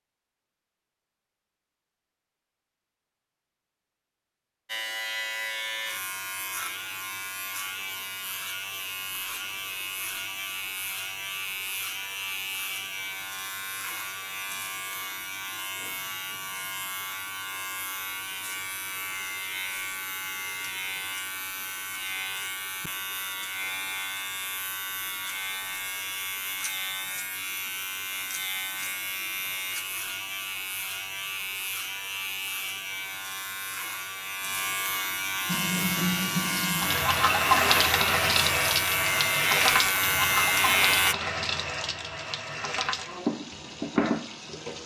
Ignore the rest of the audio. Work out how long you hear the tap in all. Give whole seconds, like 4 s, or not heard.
9 s.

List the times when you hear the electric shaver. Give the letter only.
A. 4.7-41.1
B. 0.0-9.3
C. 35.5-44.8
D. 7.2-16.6
A.